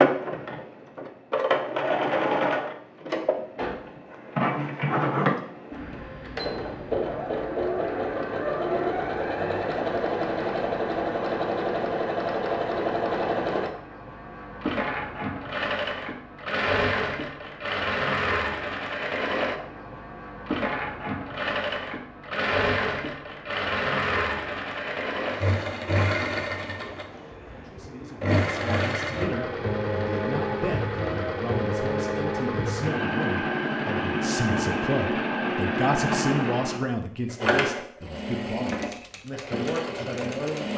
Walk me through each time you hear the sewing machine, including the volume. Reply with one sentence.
You can hear the sewing machine from 0.0 to 40.7 s, at a steady volume.